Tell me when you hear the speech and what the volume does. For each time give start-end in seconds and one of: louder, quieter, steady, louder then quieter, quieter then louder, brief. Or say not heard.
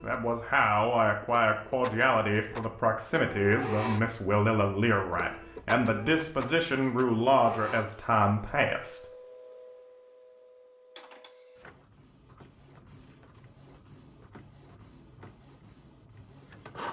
0.0-9.0 steady.